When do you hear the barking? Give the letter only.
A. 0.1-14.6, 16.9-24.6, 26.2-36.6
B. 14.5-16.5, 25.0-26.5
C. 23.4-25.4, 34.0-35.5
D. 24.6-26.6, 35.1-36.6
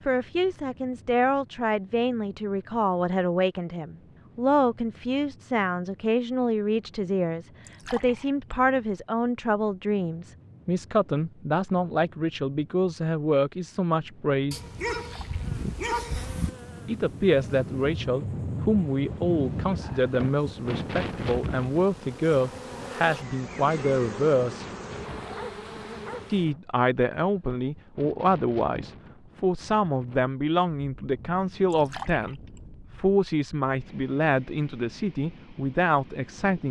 B.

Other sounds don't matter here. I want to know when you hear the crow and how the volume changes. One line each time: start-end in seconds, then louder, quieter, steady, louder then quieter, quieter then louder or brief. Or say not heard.
not heard.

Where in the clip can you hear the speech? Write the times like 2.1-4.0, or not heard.
0.1-14.6, 16.9-24.6, 26.2-36.6.